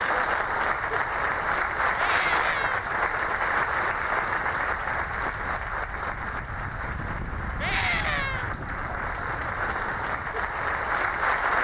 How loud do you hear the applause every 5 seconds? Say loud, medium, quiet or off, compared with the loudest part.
loud, medium, loud.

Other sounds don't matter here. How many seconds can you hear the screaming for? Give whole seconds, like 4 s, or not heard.
2 s.